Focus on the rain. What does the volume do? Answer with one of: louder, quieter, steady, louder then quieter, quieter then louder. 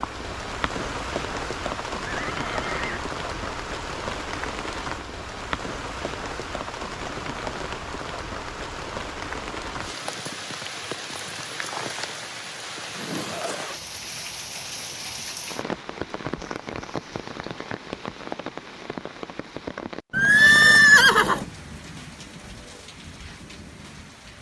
quieter.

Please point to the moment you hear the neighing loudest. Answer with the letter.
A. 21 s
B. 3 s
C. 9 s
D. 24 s
A.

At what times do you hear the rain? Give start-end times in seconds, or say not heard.
0.0-24.3.